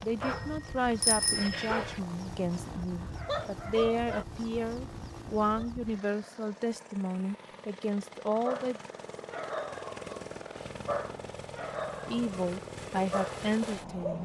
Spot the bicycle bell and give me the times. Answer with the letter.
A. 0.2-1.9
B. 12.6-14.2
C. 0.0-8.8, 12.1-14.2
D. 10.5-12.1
A.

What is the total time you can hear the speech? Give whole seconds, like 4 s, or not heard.
11 s.